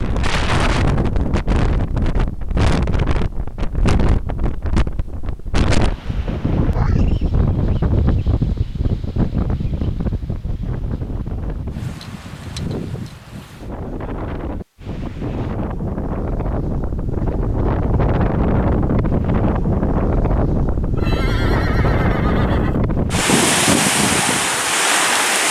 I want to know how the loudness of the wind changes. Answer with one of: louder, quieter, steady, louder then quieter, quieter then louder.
quieter then louder.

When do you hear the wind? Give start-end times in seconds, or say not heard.
0.0-25.4.